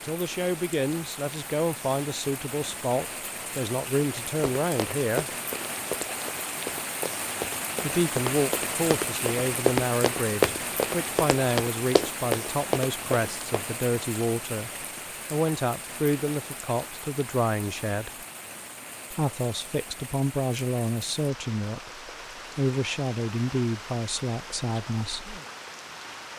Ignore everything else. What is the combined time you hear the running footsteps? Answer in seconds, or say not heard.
9 s.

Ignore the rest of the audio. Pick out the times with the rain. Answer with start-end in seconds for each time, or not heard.
0.0-26.3.